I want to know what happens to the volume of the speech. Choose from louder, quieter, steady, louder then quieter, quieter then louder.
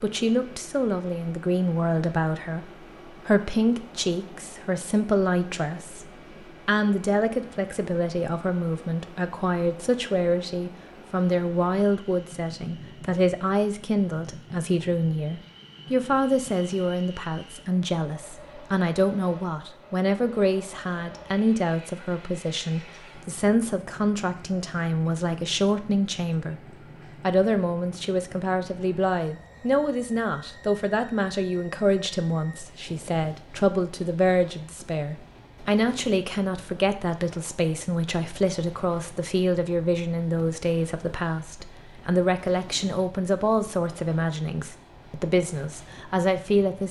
steady.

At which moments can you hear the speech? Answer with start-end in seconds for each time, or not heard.
0.0-46.8.